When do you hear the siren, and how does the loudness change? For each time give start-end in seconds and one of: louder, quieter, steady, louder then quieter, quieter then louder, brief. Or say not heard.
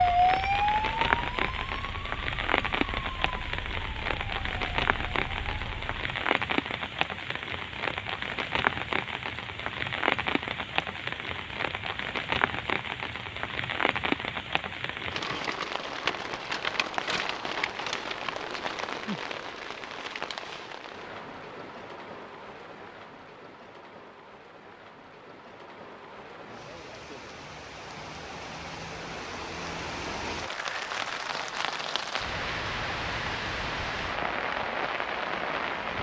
0.0-6.0 quieter.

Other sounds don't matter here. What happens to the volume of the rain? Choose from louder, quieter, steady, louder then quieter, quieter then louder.
quieter then louder.